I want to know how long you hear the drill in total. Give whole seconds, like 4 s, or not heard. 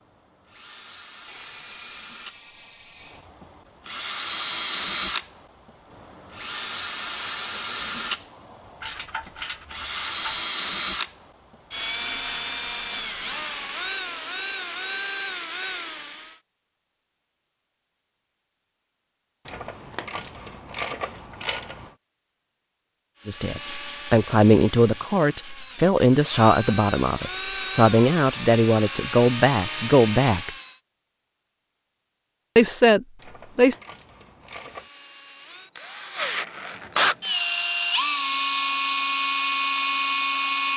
30 s.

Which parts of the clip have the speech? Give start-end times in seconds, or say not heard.
23.2-30.5, 32.5-33.8.